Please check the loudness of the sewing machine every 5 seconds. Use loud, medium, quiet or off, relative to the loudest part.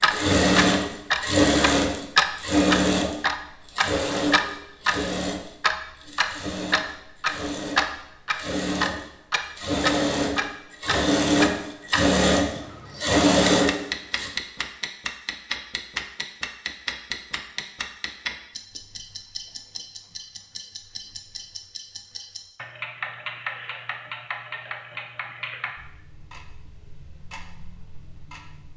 loud, medium, loud, off, off, off.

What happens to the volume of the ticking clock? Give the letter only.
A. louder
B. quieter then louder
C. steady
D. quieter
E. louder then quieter
D.